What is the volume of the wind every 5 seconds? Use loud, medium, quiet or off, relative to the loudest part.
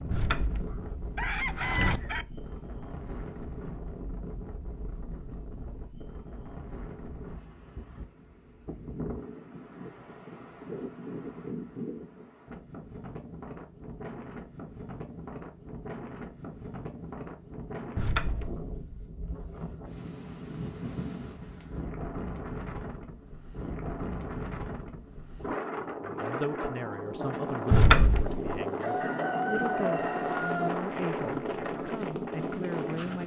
medium, medium, medium, medium, medium, loud, loud.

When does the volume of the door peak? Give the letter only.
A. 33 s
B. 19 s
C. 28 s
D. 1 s
C.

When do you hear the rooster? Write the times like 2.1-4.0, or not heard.
0.7-2.2, 28.8-30.7.